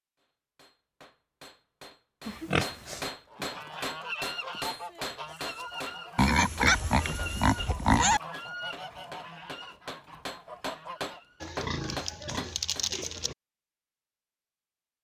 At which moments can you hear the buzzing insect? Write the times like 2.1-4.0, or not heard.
not heard.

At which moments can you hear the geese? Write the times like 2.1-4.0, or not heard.
3.1-11.3.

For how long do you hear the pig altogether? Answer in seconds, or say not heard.
5 s.